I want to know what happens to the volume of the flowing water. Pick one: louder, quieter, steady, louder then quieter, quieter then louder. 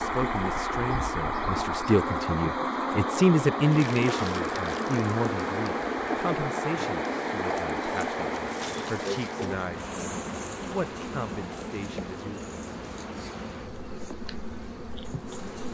quieter.